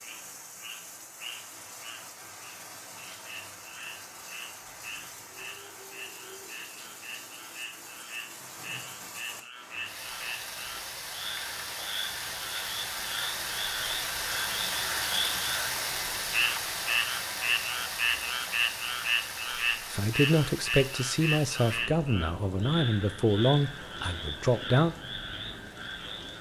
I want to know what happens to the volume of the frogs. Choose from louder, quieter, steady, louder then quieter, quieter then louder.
louder then quieter.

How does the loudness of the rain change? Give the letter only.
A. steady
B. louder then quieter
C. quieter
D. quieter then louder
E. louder
B.